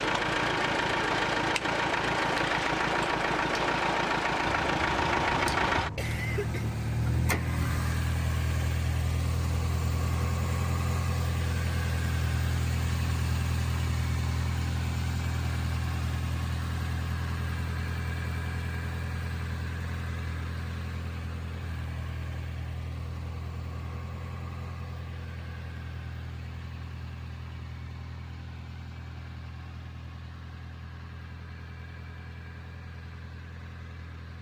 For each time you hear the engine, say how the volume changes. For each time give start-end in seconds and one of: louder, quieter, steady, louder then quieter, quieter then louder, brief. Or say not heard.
0.0-34.3 quieter.